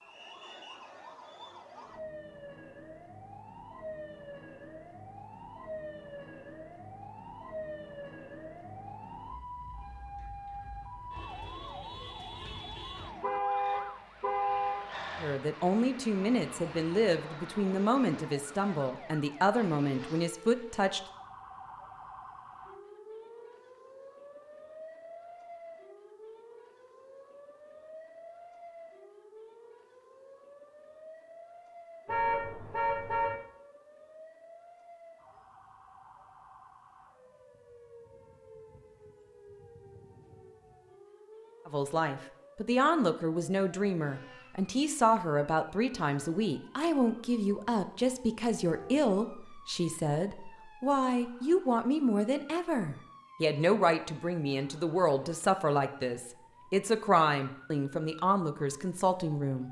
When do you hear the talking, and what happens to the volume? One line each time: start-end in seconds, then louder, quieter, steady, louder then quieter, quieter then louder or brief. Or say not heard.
15.2-21.0 steady
41.6-59.6 steady.